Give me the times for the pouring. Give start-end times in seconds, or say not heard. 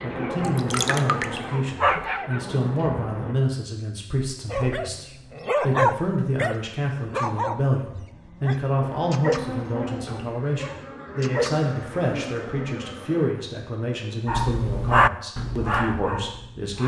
0.4-1.4.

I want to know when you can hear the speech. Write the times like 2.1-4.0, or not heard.
0.0-16.8.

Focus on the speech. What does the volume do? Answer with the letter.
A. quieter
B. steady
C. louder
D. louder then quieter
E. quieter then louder
B.